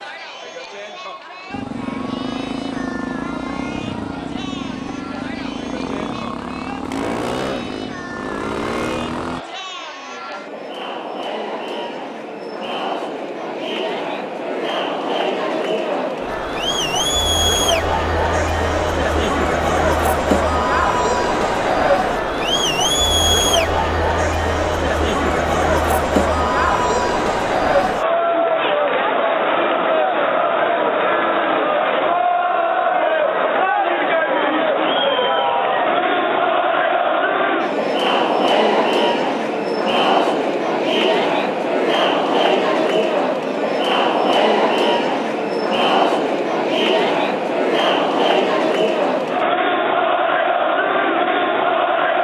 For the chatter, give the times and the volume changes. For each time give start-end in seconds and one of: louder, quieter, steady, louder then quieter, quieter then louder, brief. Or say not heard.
0.0-52.2 louder.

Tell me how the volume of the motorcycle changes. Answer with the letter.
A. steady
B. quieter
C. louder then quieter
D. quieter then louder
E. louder
A.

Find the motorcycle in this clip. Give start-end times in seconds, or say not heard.
1.5-9.4.